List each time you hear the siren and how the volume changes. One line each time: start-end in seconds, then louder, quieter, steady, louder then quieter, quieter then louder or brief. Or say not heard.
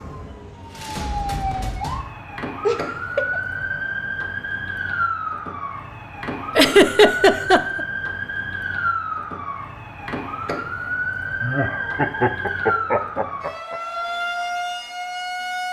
0.0-15.6 steady.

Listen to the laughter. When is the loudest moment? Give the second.
7 s.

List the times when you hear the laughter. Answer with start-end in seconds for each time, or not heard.
2.6-3.4, 6.5-7.8, 11.4-13.8.